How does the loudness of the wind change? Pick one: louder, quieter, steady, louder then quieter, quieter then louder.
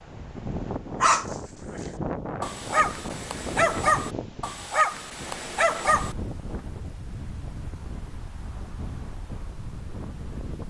quieter.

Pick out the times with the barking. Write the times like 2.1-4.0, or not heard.
1.0-6.2.